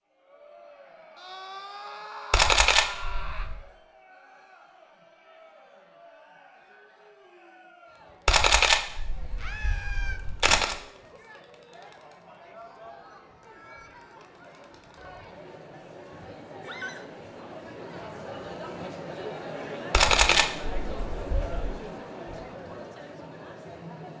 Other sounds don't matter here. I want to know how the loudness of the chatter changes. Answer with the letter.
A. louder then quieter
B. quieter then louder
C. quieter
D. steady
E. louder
E.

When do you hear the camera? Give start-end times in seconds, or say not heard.
2.3-3.6, 8.2-10.8, 19.9-21.6.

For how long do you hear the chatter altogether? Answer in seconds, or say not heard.
24 s.